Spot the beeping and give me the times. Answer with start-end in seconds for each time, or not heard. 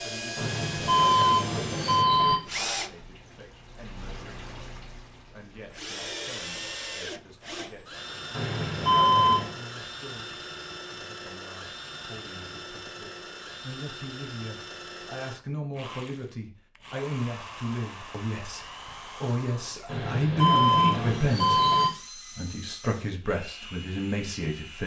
0.3-2.4, 8.3-9.6, 19.9-21.9.